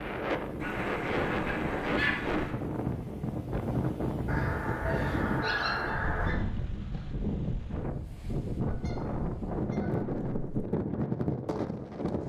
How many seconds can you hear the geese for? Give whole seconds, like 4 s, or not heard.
6 s.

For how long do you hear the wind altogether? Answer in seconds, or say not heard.
12 s.